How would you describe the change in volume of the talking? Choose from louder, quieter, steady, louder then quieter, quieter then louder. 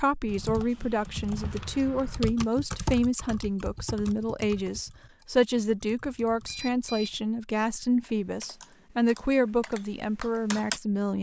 steady.